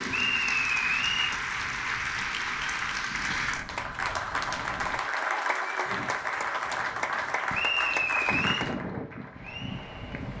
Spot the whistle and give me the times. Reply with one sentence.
You can hear the whistle from 0.1 to 1.4 s and from 7.5 to 8.7 s.